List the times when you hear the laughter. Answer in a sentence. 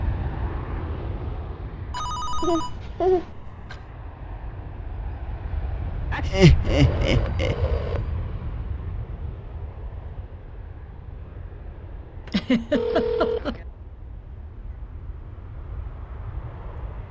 You can hear the laughter from 2.4 to 3.3 s, from 6.2 to 7.5 s and from 12.2 to 13.6 s.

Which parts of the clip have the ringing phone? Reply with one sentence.
You can hear the ringing phone from 1.9 to 3.9 s, from 6.1 to 8.1 s and from 12.7 to 13.6 s.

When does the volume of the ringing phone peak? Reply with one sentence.
The loudest moment of the ringing phone is at 13 seconds.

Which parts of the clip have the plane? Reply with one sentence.
The plane can be heard from 0.0 to 17.0 s.